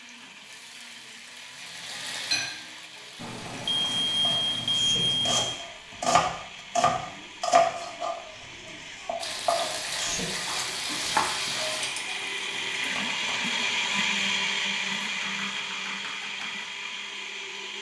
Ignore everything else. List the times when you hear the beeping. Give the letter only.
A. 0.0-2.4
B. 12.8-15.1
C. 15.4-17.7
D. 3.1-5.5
D.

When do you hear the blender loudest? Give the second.
14 s.